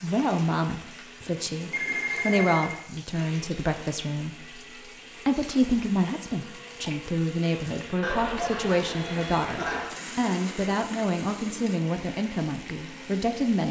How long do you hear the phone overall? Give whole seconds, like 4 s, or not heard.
3 s.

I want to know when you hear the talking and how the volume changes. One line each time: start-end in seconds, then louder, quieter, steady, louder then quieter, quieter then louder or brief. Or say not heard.
0.0-13.6 steady.